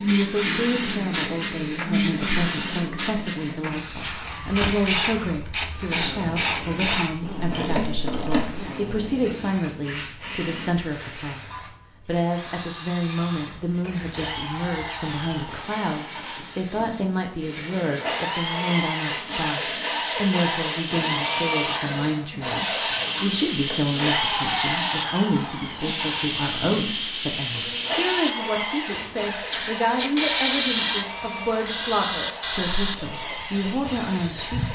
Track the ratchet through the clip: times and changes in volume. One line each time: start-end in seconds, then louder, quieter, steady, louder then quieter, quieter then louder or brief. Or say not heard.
4.2-8.7 steady.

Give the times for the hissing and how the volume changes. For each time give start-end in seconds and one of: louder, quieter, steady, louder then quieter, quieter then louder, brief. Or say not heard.
0.0-34.7 quieter then louder.